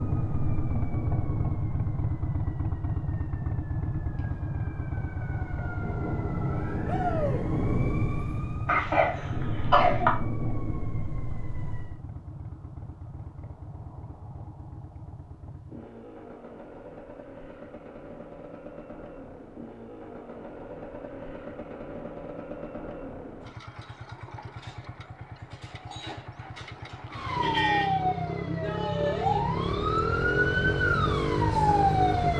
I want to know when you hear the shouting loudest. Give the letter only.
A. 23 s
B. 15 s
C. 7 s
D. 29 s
C.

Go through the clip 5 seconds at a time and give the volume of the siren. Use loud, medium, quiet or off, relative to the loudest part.
quiet, medium, medium, off, off, loud, loud.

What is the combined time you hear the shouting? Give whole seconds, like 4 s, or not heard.
2 s.